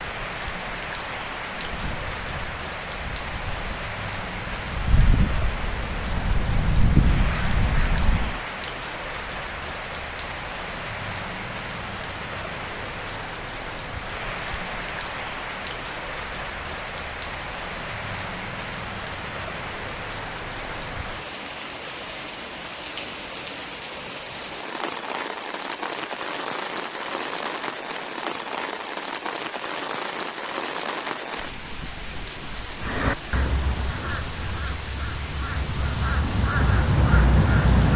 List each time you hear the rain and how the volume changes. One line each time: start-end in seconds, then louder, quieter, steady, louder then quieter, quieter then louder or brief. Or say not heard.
0.0-37.9 steady.